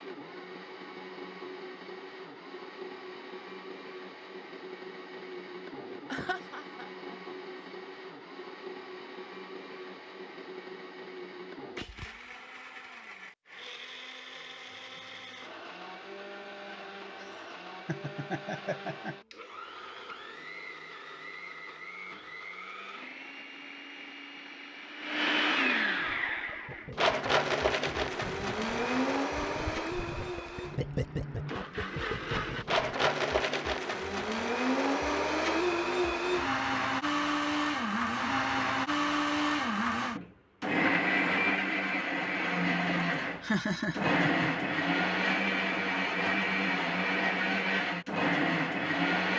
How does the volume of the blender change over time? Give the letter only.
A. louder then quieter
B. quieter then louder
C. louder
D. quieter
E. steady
C.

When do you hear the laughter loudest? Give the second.
44 s.